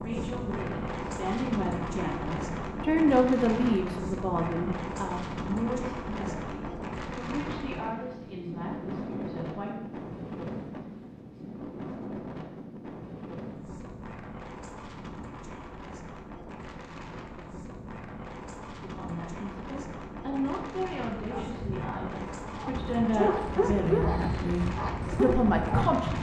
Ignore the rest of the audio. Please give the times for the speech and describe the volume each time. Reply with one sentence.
The speech can be heard from 0.0 to 9.8 s, getting louder then quieter; and from 18.8 to 26.1 s, getting louder.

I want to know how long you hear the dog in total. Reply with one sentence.
You can hear the dog for 5 seconds altogether.